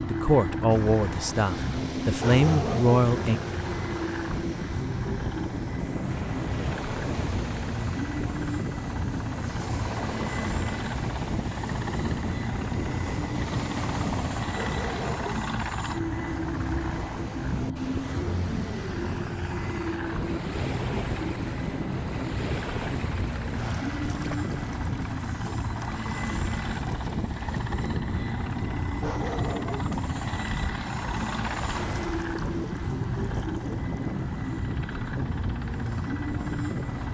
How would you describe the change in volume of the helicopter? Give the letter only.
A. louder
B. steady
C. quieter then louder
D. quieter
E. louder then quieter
B.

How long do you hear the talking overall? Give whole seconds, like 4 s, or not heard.
3 s.